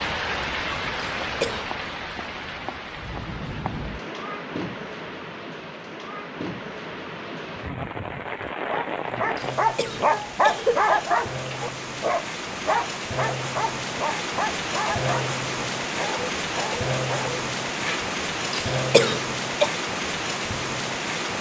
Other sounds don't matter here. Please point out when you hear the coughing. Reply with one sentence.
You can hear the coughing from 1.2 to 1.7 s, from 9.3 to 11.0 s and from 18.5 to 19.7 s.